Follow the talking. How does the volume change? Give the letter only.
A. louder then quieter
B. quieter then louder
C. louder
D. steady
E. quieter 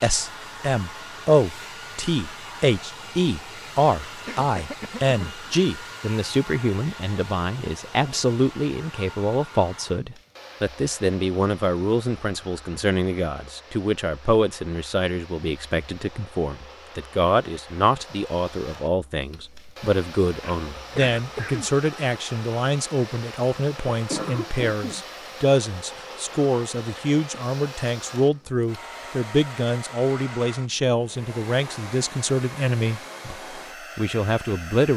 D.